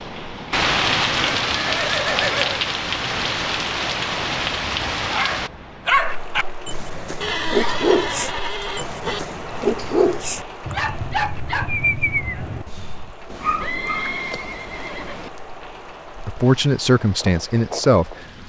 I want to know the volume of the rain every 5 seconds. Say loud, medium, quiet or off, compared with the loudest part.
loud, medium, quiet, quiet.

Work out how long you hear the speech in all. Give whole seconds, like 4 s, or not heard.
2 s.